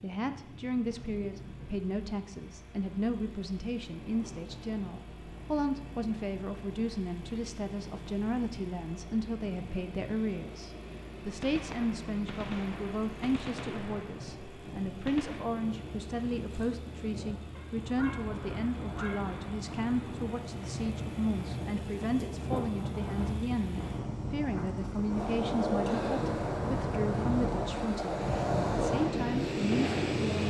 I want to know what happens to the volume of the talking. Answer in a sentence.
The volume of the talking stays about the same.